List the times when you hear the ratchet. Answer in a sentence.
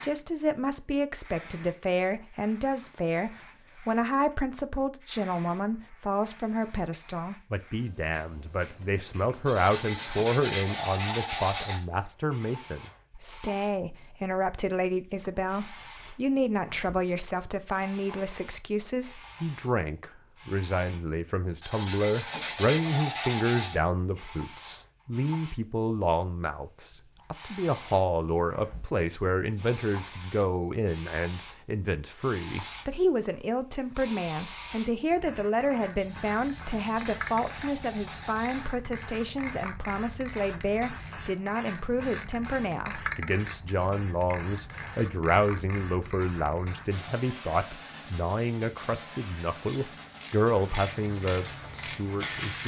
The ratchet can be heard from 49.5 to 52.6 s.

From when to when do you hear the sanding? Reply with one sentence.
You can hear the sanding from 9.4 to 11.8 s, from 21.6 to 23.8 s and from 36.0 to 38.8 s.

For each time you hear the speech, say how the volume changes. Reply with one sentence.
You can hear the speech from 0.0 to 52.6 s, at a steady volume.